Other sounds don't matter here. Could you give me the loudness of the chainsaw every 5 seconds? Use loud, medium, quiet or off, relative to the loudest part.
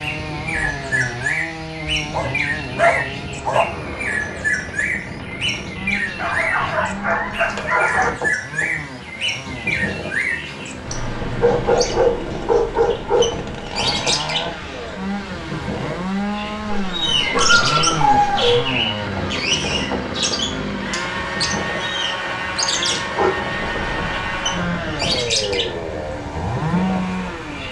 medium, medium, medium, loud, loud, loud.